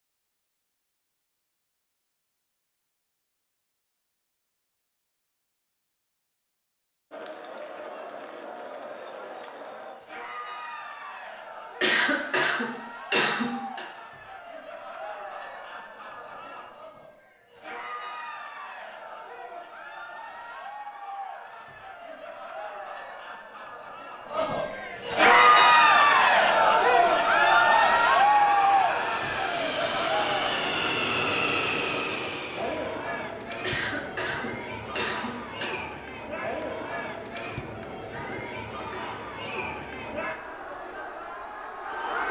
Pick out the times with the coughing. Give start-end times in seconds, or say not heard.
11.8-13.8, 33.6-35.7.